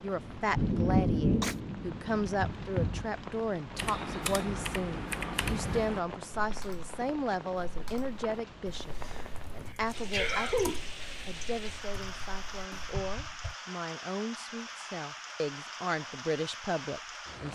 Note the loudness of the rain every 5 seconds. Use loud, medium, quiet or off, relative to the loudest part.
loud, quiet, medium, medium.